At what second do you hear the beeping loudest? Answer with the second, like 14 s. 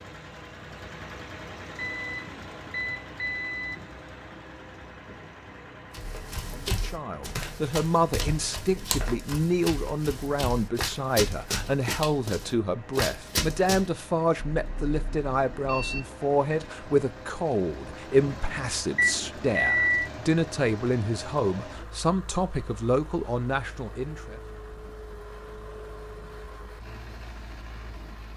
20 s.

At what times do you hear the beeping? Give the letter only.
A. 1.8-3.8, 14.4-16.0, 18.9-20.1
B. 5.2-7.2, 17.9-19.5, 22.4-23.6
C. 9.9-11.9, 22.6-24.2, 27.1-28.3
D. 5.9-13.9
A.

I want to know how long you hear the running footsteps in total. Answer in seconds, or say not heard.
8 s.